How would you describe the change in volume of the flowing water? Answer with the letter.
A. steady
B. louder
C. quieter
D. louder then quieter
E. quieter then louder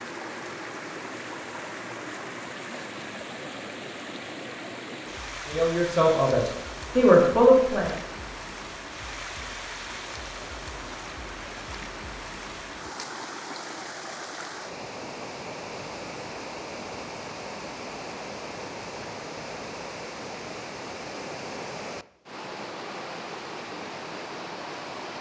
A.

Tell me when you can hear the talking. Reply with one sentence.
The talking can be heard from 5.5 to 8.0 s.